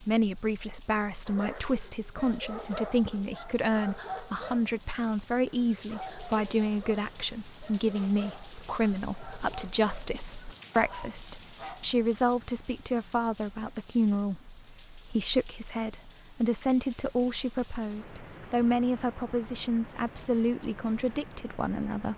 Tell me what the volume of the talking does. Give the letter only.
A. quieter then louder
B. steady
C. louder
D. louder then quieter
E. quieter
B.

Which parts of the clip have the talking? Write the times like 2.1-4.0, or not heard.
0.0-22.1.